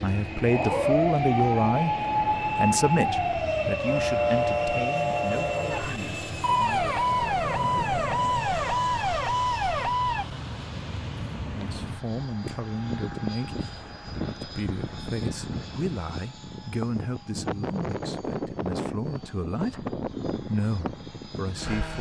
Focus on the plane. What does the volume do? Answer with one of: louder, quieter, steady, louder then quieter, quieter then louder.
steady.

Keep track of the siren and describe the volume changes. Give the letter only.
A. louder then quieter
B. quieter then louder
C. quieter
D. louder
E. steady
E.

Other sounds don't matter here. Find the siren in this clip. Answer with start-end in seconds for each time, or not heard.
0.0-10.2.